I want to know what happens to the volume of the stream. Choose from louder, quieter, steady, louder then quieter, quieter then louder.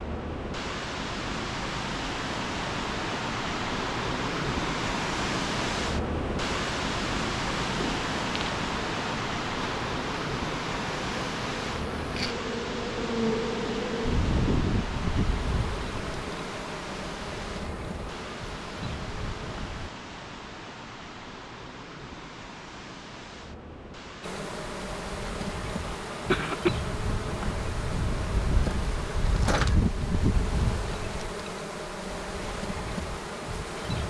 quieter.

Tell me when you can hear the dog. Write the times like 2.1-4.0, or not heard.
not heard.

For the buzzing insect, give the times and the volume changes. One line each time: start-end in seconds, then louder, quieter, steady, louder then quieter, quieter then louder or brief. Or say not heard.
7.7-19.9 louder then quieter
24.2-34.0 louder then quieter.